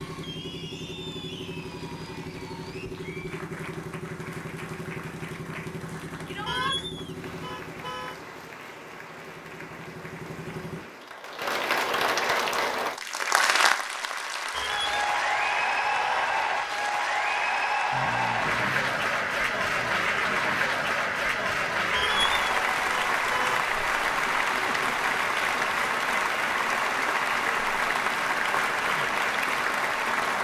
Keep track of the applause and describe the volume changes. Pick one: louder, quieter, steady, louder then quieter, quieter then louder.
louder.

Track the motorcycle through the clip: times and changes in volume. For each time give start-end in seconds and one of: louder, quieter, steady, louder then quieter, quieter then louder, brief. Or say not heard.
0.0-10.8 quieter
17.9-19.9 brief.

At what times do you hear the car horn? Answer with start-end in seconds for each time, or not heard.
6.5-8.2, 14.5-16.4, 21.9-23.6.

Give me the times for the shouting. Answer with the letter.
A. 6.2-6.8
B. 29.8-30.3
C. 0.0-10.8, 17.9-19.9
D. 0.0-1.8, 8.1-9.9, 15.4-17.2
A.